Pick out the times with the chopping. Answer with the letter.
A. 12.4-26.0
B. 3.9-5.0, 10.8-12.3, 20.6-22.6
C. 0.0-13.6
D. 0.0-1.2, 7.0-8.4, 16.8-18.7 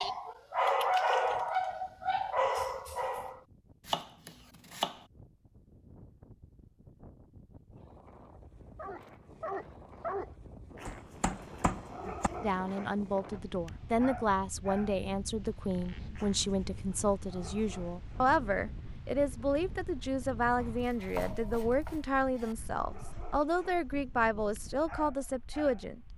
B.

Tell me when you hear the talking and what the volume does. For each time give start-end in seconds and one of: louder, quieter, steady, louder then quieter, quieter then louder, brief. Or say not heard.
12.4-26.0 steady.